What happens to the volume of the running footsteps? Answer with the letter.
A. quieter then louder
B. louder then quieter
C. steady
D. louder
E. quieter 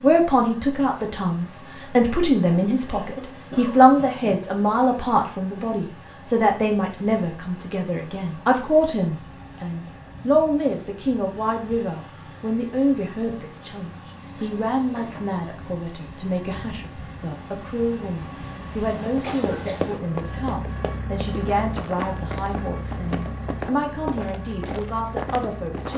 C.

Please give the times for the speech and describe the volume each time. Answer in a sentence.
You can hear the speech from 0.0 to 25.9 s, getting quieter.